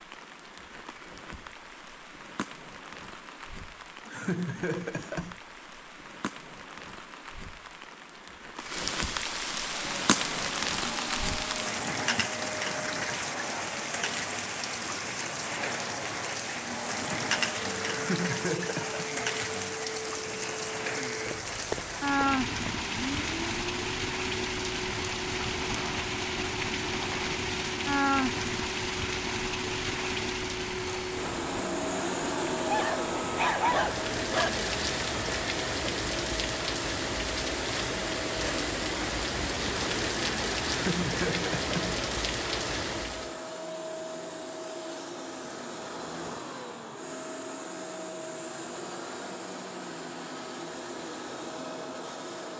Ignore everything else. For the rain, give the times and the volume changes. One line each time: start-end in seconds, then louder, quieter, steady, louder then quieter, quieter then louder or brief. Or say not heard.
0.0-43.4 louder.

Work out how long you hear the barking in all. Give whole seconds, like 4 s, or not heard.
2 s.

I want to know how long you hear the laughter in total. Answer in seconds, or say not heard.
4 s.